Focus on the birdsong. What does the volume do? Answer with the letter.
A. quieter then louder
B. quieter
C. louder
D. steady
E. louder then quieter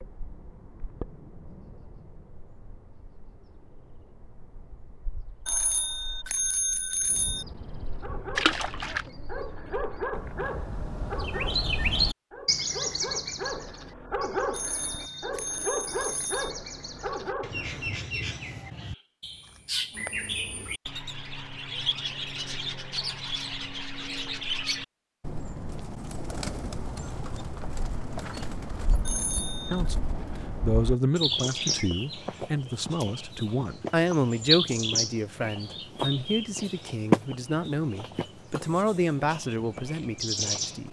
C.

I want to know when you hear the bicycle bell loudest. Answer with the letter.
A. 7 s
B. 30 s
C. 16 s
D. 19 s
A.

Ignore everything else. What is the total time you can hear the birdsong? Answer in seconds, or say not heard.
41 s.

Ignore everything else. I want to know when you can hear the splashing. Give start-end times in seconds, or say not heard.
8.3-9.1.